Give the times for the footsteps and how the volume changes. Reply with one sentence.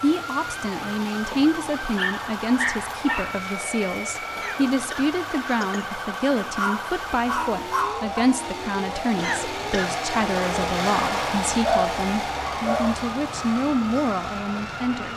The footsteps can't be heard in this clip.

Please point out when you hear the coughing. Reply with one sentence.
You can hear the coughing from 4.3 to 5.9 s and from 9.2 to 10.0 s.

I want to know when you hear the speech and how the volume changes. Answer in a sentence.
The speech can be heard from 0.0 to 15.1 s, at a steady volume.